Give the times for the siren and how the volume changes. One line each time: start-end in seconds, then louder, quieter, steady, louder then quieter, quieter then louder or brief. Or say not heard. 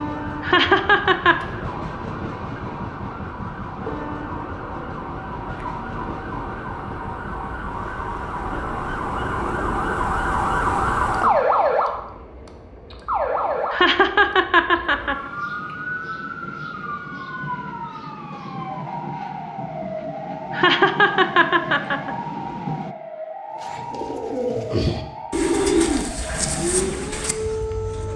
0.0-28.1 louder then quieter.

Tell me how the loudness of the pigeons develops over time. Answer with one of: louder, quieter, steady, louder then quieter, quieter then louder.
louder then quieter.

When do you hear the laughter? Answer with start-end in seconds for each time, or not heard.
0.4-1.4, 13.7-15.2, 20.5-22.1.